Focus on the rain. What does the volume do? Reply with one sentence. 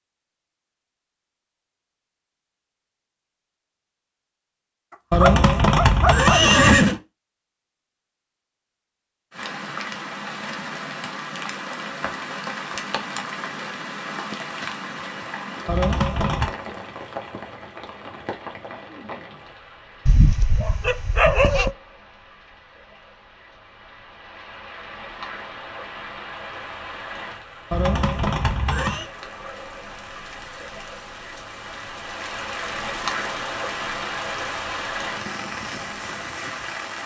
The loudness of the rain goes down, then up.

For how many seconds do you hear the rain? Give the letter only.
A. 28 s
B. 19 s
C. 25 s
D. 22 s
A.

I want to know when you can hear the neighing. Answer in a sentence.
The neighing can be heard from 5.1 to 7.0 s, from 15.7 to 16.5 s and from 27.7 to 29.1 s.